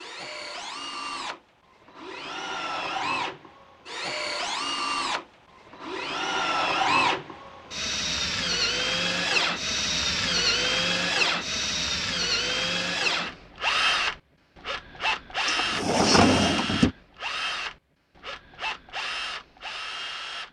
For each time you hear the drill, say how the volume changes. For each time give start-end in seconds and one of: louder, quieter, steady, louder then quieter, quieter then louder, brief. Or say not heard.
0.0-20.4 louder then quieter.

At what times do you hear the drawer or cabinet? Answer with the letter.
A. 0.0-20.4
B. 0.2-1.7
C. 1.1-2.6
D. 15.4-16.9
D.